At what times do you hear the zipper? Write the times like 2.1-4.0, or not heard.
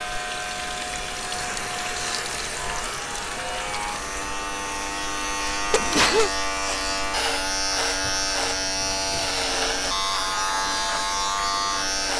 not heard.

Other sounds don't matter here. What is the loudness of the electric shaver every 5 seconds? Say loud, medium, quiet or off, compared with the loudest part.
medium, loud, loud.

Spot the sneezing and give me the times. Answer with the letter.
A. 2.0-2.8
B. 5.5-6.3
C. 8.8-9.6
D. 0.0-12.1
B.